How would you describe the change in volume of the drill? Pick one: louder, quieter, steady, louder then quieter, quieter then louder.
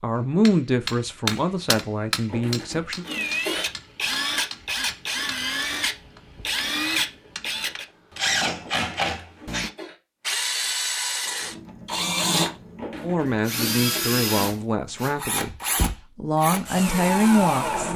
steady.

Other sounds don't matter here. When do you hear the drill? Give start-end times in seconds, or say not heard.
3.0-17.9.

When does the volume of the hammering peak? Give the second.
1 s.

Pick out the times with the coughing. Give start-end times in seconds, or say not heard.
2.2-3.7, 8.6-9.9, 12.8-14.0.